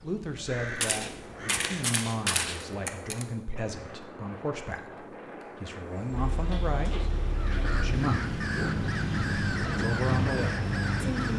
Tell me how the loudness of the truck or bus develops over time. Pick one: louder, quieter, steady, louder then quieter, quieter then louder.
louder.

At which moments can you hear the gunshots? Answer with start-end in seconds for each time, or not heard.
0.7-3.2.